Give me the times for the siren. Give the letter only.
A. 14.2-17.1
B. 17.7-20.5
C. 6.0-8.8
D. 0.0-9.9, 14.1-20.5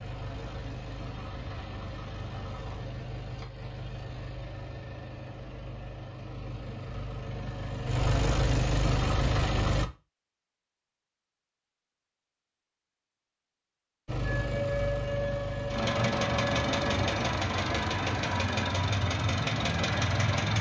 A.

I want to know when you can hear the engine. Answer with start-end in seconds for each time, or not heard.
0.0-9.9, 14.1-20.5.